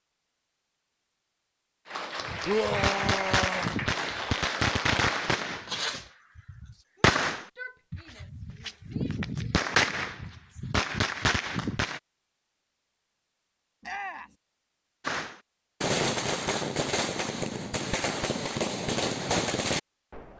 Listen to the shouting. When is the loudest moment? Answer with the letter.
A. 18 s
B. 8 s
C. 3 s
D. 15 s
C.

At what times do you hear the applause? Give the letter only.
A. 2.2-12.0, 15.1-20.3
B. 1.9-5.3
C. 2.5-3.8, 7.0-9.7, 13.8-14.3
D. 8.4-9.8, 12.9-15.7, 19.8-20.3
B.